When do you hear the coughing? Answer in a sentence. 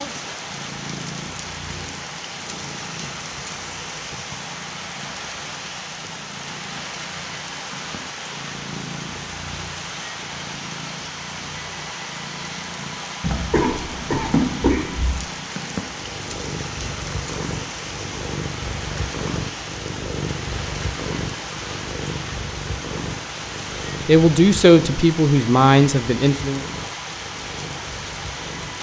You can hear the coughing from 13.2 to 15.2 s.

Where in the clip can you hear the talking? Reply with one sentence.
You can hear the talking from 24.1 to 26.6 s.